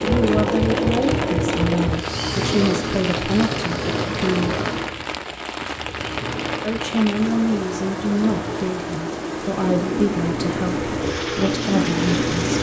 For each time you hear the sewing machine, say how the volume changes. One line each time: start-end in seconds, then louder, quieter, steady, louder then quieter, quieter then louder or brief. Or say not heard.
0.0-12.5 quieter then louder.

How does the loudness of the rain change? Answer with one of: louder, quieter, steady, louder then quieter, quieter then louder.
steady.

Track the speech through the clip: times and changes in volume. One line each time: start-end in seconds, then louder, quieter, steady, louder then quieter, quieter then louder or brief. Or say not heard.
0.0-4.6 quieter
6.6-12.3 steady.